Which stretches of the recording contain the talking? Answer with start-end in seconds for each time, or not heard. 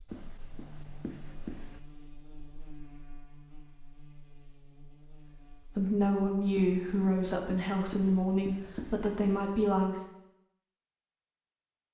5.5-10.1.